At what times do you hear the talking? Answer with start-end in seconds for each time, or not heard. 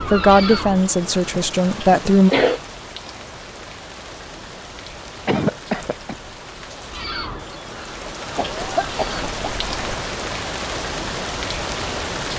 0.1-2.3.